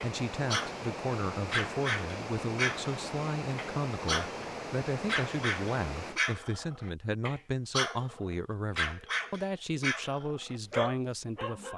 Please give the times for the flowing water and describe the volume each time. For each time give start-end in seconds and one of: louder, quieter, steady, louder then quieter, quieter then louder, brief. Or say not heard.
0.0-6.2 steady.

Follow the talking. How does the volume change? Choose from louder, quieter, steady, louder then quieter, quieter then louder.
steady.